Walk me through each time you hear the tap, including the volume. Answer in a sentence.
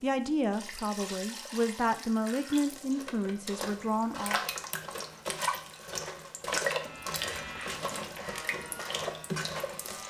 The tap can be heard from 0.0 to 10.0 s, getting louder.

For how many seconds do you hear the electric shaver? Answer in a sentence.
The electric shaver can be heard for 3 seconds in total.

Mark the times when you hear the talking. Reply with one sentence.
You can hear the talking from 0.0 to 4.4 s.